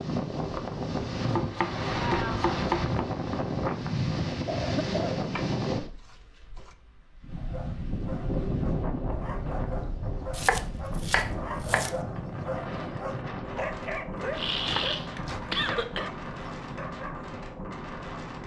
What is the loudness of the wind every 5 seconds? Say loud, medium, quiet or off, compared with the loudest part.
loud, loud, medium, medium.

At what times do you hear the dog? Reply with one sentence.
You can hear the dog from 7.3 to 17.3 s.